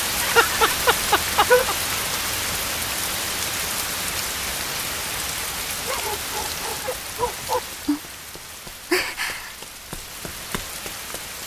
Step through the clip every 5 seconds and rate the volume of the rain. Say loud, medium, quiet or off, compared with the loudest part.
loud, loud, medium.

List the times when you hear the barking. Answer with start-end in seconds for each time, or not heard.
0.2-1.8, 5.8-7.6.